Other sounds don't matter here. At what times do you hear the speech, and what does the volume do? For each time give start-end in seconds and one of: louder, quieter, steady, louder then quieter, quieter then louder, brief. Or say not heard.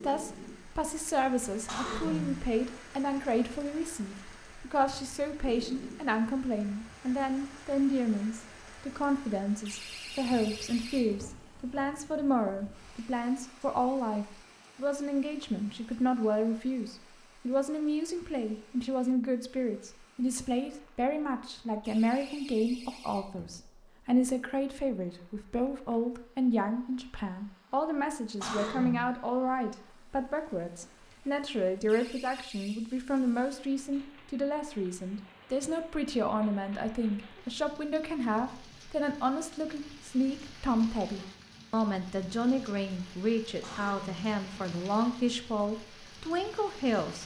0.0-47.2 steady.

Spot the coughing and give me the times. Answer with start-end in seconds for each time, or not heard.
1.6-2.4, 28.4-29.1, 43.6-44.4.